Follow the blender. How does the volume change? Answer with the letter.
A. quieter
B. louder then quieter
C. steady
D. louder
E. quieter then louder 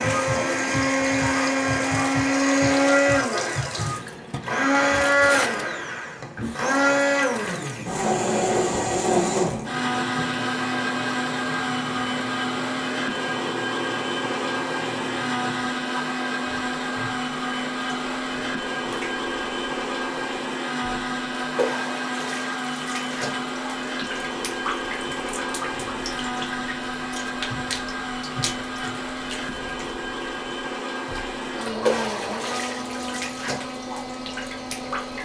A.